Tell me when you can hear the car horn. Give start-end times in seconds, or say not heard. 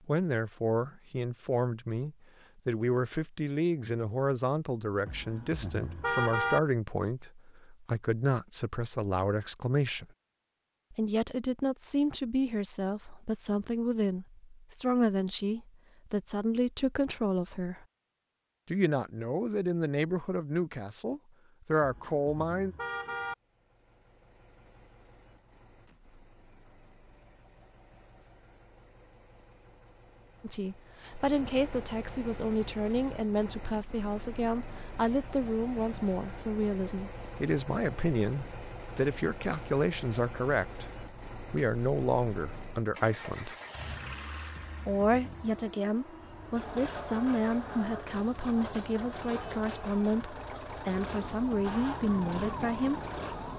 5.0-6.6, 21.8-23.4, 44.5-45.5.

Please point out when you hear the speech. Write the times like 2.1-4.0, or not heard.
0.1-10.1, 10.9-17.9, 18.6-22.8, 30.4-43.5, 44.9-53.0.